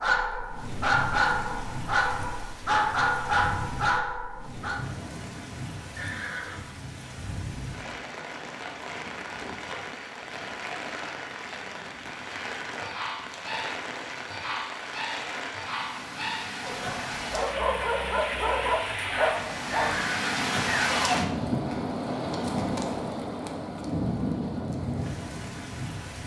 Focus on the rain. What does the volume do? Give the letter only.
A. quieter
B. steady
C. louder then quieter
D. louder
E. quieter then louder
D.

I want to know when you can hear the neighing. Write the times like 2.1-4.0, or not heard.
6.0-6.6, 19.7-21.1.